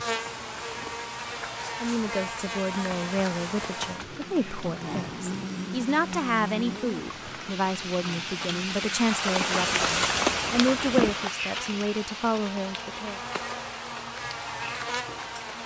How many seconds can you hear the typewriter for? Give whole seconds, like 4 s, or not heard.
not heard.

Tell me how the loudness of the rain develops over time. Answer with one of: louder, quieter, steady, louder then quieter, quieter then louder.
louder then quieter.